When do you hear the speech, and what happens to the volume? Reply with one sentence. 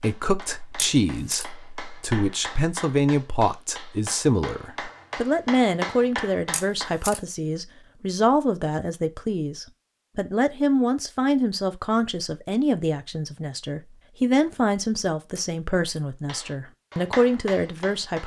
You can hear the speech from 0.0 to 18.2 s, at a steady volume.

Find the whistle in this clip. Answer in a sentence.
You can't hear the whistle here.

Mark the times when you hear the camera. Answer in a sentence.
The camera can be heard from 0.8 to 1.4 s, from 6.5 to 7.2 s and from 15.3 to 16.0 s.